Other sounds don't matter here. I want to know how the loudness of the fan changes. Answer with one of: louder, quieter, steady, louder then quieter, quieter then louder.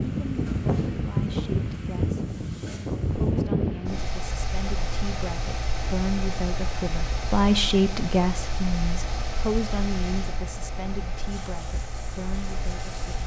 quieter.